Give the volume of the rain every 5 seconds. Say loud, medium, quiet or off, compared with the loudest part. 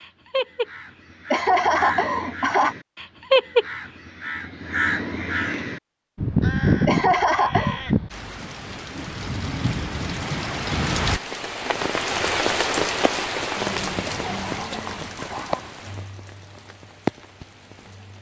off, medium, loud, medium.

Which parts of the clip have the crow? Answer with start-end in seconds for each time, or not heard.
0.0-8.1.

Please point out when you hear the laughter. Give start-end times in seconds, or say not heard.
1.3-2.8, 6.8-7.8, 14.1-15.8.